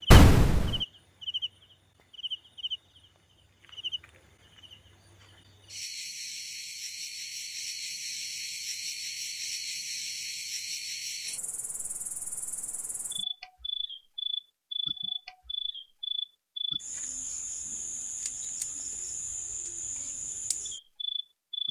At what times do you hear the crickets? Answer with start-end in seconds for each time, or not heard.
0.0-21.6.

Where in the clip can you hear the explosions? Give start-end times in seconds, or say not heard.
0.1-0.8.